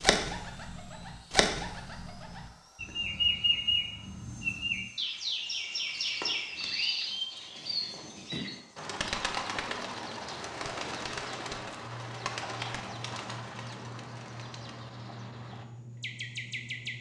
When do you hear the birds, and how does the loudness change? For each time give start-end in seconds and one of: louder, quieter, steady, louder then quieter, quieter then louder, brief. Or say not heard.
0.0-16.9 quieter.